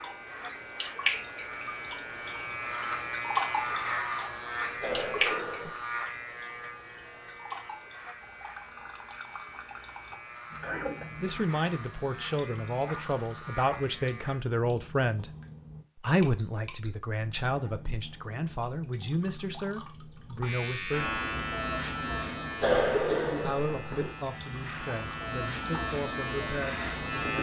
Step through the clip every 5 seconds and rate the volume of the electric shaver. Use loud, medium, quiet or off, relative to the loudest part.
loud, medium, medium, off, loud, loud.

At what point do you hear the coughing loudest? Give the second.
23 s.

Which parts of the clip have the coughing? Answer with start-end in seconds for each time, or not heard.
4.8-5.8, 10.1-11.1, 22.6-24.1.